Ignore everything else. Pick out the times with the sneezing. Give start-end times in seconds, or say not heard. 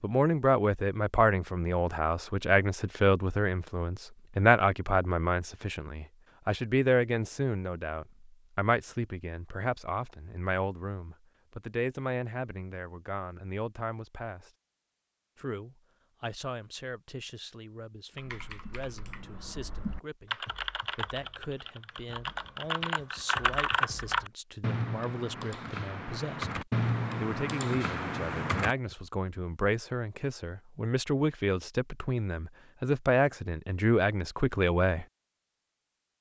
not heard.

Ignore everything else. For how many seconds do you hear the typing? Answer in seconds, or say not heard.
11 s.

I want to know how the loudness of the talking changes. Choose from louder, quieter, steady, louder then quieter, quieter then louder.
quieter then louder.